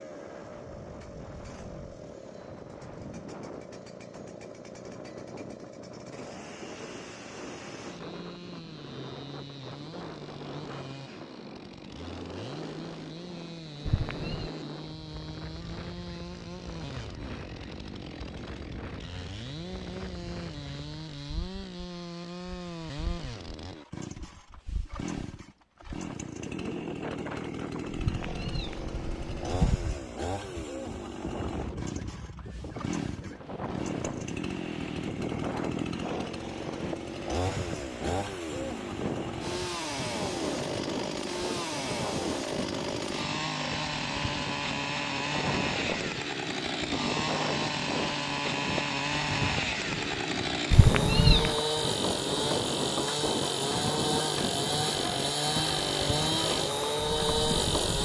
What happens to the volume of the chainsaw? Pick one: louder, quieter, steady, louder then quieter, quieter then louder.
louder.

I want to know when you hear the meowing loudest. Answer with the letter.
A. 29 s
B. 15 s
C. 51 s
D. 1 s
C.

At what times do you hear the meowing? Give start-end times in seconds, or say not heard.
13.8-14.5, 27.9-29.9, 50.7-51.5.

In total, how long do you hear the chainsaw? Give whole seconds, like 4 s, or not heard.
58 s.